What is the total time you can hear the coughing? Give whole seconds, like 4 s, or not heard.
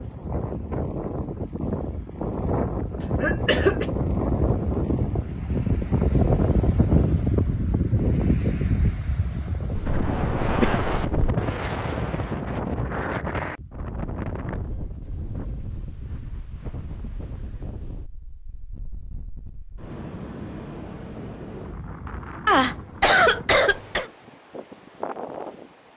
4 s.